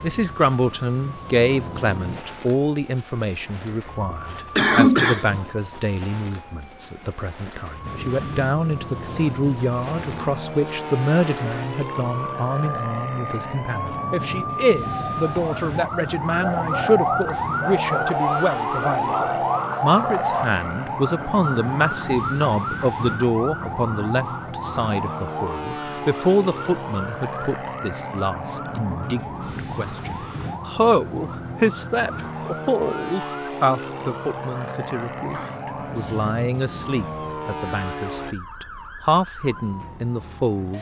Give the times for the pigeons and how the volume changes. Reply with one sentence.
The pigeons can be heard from 14.8 to 20.5 s, getting louder.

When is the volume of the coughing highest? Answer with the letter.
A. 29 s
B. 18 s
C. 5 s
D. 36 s
C.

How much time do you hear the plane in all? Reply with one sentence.
You can hear the plane for 33 seconds altogether.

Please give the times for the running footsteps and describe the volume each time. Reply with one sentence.
The running footsteps can't be heard in this clip.